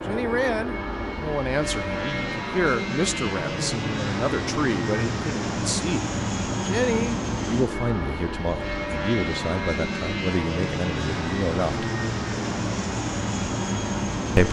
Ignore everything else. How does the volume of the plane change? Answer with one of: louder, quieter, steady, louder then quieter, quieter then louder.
steady.